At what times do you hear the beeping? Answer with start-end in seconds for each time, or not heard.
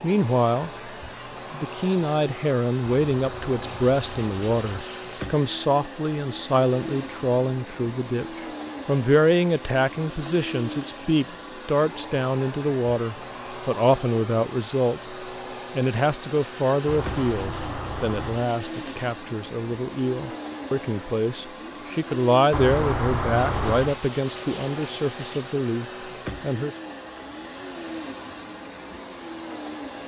2.9-4.8, 16.9-18.5, 22.5-24.0.